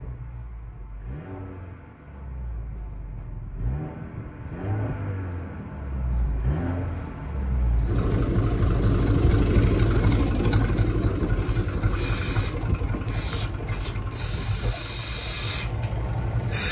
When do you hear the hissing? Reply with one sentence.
The hissing can be heard from 11.0 to 16.6 s.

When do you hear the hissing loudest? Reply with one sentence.
The volume of the hissing peaks at 16 seconds.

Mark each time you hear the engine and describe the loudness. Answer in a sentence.
You can hear the engine from 0.0 to 16.6 s, getting louder then quieter.